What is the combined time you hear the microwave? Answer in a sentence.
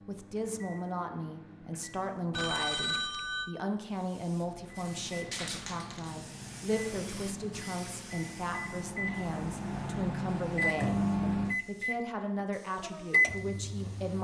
You can hear the microwave for 12 seconds altogether.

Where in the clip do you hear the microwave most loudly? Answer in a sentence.
The loudest moment of the microwave is at 11 seconds.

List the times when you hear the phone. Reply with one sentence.
The phone can be heard from 2.3 to 3.5 s.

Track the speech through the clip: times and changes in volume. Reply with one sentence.
You can hear the speech from 0.1 to 14.2 s, at a steady volume.